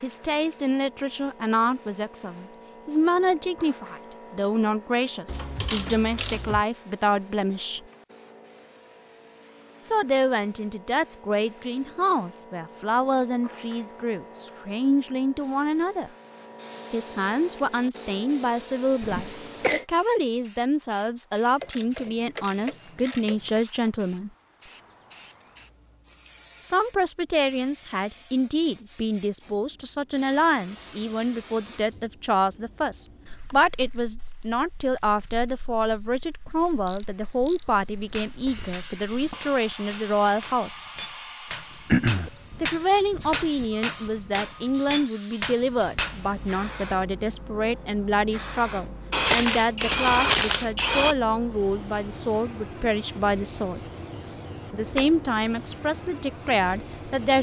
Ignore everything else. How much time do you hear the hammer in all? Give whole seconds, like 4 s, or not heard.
9 s.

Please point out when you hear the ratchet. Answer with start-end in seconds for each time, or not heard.
5.2-6.7, 21.6-23.6, 36.9-37.6, 49.1-51.1.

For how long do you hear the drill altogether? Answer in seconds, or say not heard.
not heard.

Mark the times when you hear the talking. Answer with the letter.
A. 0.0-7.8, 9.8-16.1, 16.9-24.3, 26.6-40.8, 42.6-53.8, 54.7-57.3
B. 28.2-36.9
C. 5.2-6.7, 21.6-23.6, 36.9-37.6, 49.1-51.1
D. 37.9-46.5
A.